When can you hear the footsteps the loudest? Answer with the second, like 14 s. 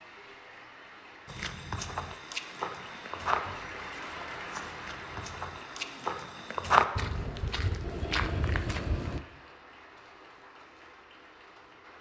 7 s.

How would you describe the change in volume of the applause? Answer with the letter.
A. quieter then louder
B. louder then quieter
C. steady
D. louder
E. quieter
B.